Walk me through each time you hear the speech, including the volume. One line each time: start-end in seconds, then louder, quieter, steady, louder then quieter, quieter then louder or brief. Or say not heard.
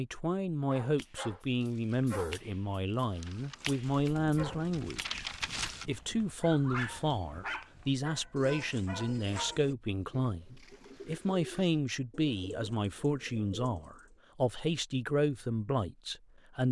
0.0-16.6 steady.